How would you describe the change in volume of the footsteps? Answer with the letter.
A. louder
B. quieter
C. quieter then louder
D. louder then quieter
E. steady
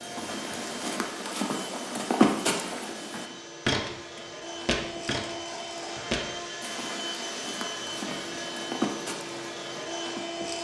D.